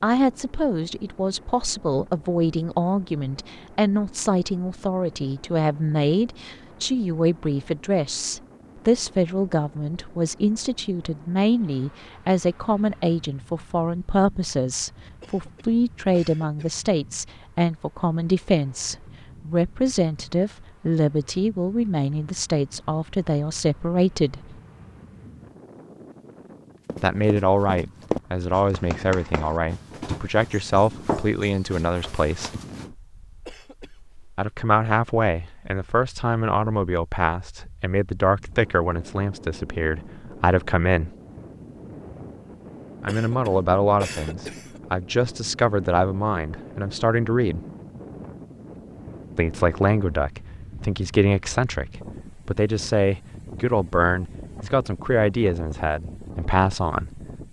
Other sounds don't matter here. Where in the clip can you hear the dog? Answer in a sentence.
The dog can't be heard in this clip.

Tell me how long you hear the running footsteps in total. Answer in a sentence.
The running footsteps can be heard for 6 seconds in total.